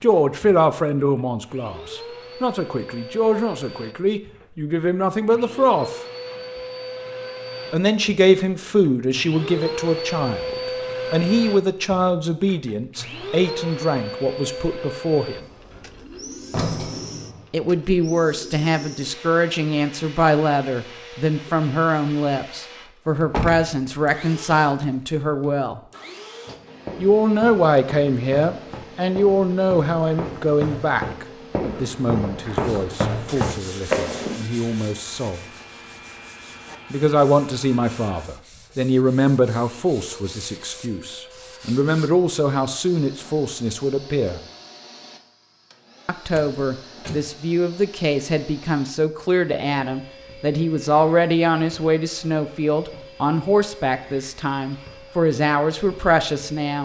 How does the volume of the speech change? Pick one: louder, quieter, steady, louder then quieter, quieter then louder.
steady.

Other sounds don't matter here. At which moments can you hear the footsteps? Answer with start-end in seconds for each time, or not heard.
26.4-34.4.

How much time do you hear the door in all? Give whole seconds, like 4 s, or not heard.
5 s.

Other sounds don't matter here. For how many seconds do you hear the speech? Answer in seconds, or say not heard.
49 s.